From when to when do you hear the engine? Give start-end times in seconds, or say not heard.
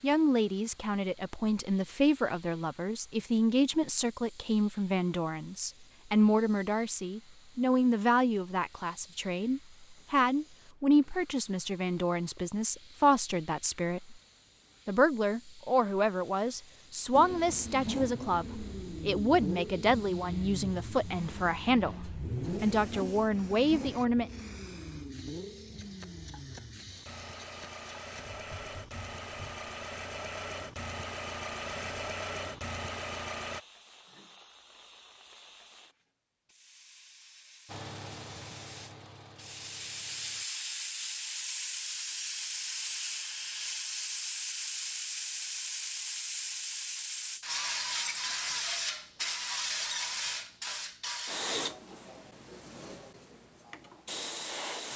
17.1-33.6, 37.6-40.5.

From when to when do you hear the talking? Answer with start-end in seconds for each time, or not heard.
0.0-14.2, 14.8-24.3.